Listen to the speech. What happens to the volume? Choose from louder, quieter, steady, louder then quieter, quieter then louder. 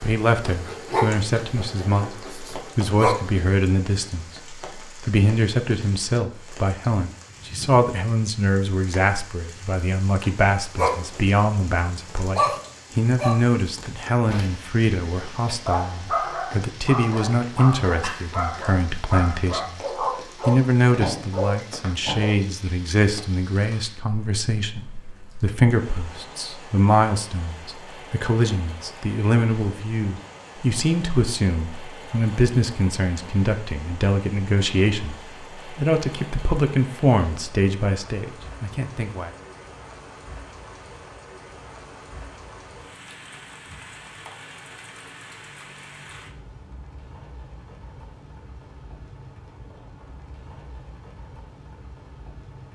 steady.